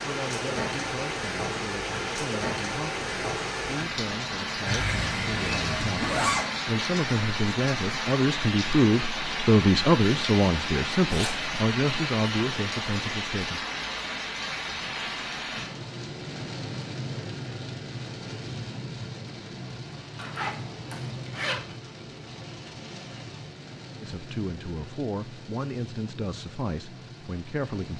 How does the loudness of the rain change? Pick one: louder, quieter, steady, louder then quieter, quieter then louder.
quieter.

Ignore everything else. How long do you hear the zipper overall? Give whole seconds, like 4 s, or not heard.
4 s.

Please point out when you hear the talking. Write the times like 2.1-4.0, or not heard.
0.0-13.7, 24.0-27.9.